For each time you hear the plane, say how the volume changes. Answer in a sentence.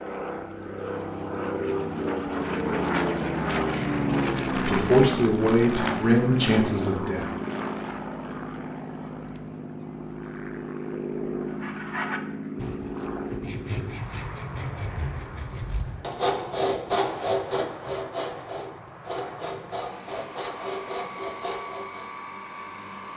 The plane can be heard from 0.0 to 23.1 s, getting quieter.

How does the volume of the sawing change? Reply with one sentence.
The loudness of the sawing goes up, then down.